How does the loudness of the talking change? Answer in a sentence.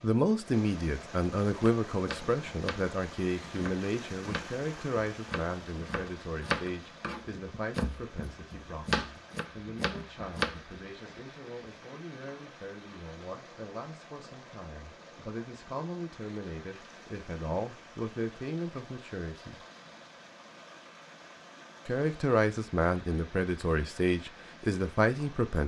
The loudness of the talking goes down, then up.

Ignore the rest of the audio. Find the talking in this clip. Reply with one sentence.
You can hear the talking from 0.0 to 19.6 s and from 21.9 to 25.6 s.